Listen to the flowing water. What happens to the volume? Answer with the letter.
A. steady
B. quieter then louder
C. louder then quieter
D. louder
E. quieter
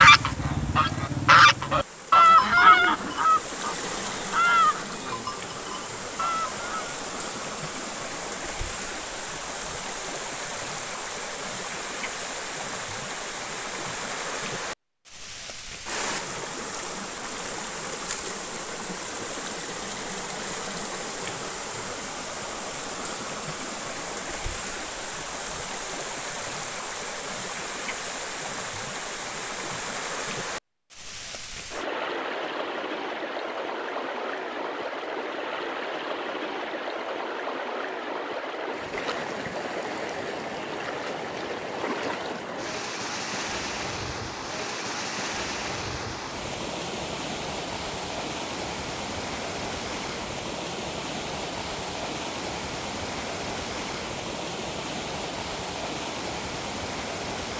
A.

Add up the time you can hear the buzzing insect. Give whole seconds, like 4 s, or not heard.
not heard.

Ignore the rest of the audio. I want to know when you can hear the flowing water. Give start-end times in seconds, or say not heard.
0.0-57.5.